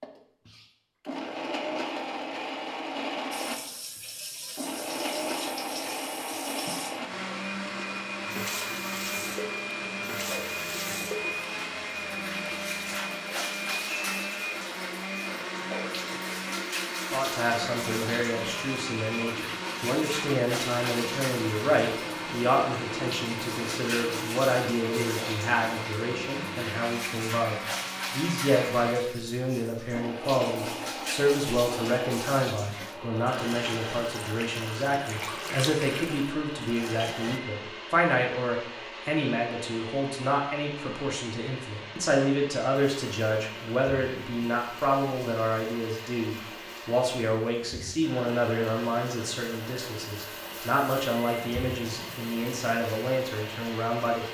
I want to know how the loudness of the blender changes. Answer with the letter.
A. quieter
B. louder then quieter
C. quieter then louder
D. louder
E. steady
A.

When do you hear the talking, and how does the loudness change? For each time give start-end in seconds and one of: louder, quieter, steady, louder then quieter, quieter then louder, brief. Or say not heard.
17.1-54.2 steady.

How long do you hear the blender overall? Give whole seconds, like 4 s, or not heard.
54 s.